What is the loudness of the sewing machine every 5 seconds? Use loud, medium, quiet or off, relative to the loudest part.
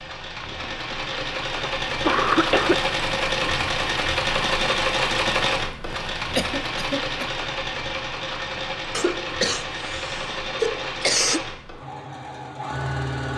loud, loud, medium.